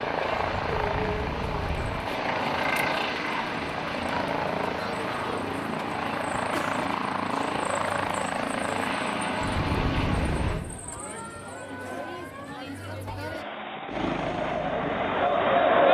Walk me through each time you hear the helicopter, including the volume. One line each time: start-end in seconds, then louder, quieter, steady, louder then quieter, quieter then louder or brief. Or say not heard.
0.0-10.6 steady
13.8-15.8 brief.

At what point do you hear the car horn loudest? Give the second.
10 s.